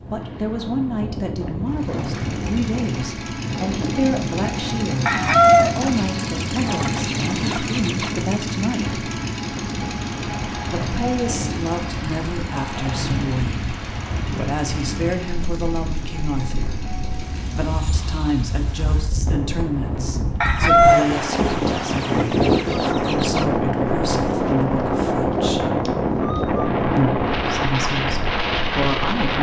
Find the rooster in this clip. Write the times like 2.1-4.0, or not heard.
5.0-8.1, 20.4-23.4.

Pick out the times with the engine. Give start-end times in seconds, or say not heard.
1.6-18.5.